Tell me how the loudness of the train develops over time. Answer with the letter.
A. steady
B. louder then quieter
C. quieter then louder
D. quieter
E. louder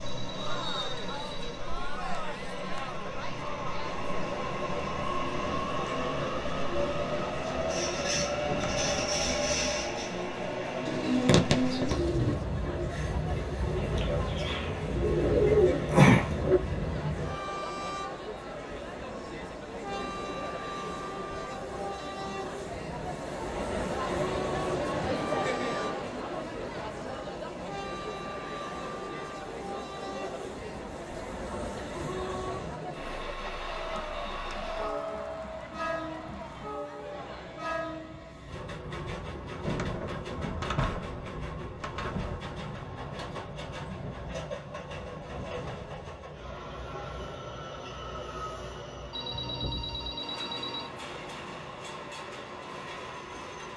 D.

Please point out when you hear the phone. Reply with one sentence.
You can hear the phone from 0.0 to 1.6 s and from 49.1 to 50.9 s.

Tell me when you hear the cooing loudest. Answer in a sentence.
The loudest moment of the cooing is at 16 seconds.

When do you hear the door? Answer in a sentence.
The door can be heard from 8.4 to 9.1 s and from 39.6 to 42.4 s.